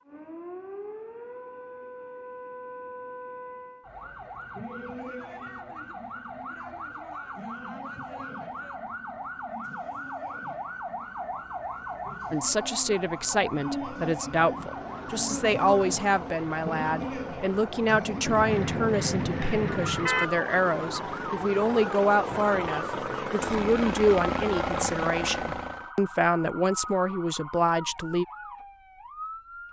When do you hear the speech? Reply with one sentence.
The speech can be heard from 12.3 to 28.2 s.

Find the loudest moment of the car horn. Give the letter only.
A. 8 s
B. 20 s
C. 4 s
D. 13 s
B.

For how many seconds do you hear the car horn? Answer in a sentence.
You can hear the car horn for 2 seconds altogether.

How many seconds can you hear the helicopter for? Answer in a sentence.
The helicopter can be heard for 11 seconds in total.